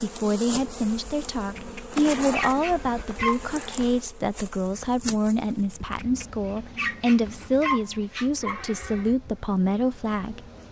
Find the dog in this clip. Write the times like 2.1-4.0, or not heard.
1.6-3.5, 6.0-8.7.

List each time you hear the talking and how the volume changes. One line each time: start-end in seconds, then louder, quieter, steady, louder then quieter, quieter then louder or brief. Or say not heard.
0.0-10.6 steady.